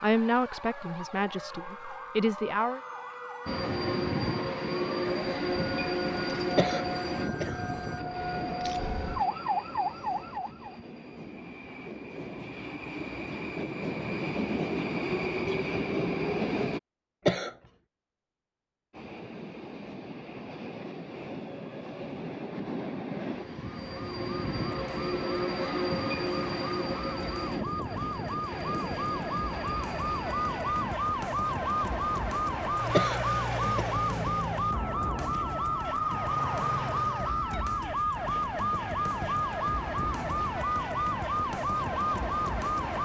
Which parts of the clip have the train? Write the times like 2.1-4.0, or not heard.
3.5-16.8, 18.9-30.9.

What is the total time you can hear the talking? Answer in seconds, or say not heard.
3 s.